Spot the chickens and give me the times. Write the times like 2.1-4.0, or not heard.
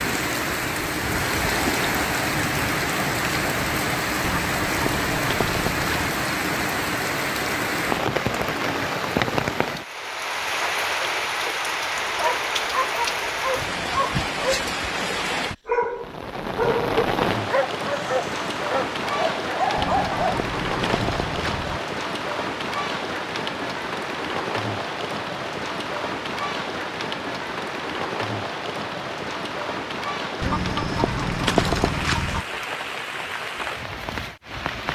4.2-6.2, 19.8-21.8, 30.4-32.5.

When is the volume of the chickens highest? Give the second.
32 s.